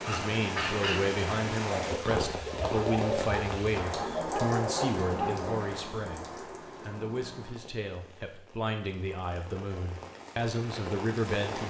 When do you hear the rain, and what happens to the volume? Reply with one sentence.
The rain can be heard from 0.0 to 11.6 s, getting quieter then louder.